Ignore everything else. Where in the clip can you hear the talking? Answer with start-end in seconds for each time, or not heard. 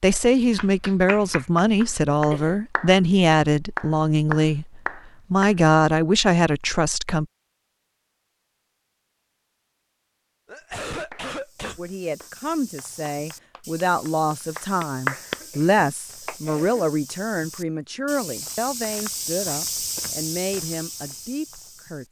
0.0-7.2, 11.8-22.0.